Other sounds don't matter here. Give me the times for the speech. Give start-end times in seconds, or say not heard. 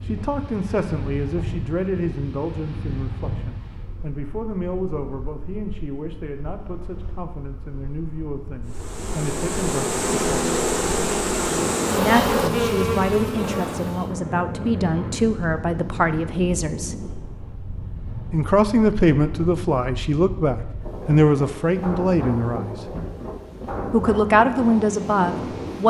0.0-10.6, 11.9-17.1, 18.3-22.8, 23.9-25.8.